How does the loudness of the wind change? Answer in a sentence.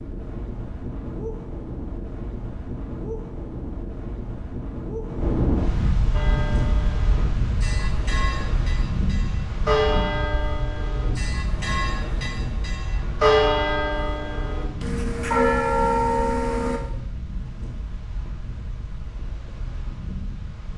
The loudness of the wind goes up, then down.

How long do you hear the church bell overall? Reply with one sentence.
The church bell can be heard for 11 seconds in total.